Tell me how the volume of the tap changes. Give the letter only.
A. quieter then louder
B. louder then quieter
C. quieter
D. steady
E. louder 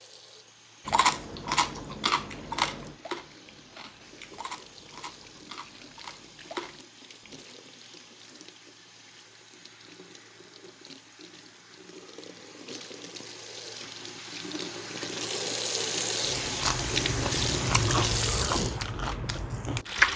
E.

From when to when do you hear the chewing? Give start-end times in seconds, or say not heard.
0.8-7.5, 16.2-20.1.